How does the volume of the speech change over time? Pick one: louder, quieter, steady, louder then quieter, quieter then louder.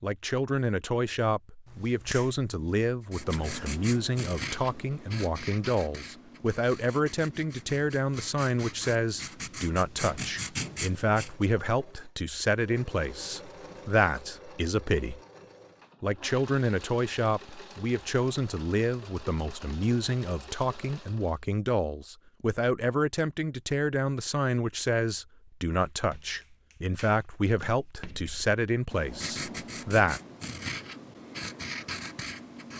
steady.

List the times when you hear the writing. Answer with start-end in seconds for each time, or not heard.
3.1-11.4, 27.9-32.7.